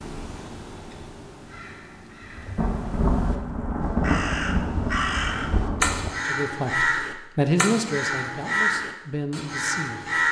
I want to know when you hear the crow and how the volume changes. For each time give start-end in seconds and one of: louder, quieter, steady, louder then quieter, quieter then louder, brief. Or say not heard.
0.0-10.2 louder.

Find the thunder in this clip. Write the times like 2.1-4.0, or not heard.
2.5-6.1.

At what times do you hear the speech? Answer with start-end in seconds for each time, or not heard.
6.2-10.2.